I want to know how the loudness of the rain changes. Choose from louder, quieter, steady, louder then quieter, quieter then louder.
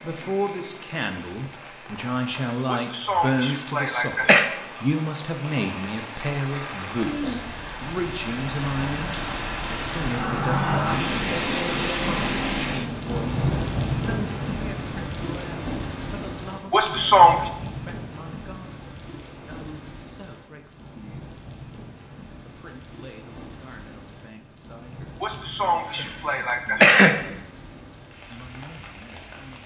louder then quieter.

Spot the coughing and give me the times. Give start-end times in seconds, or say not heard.
2.6-4.5, 16.7-17.5, 25.2-27.1.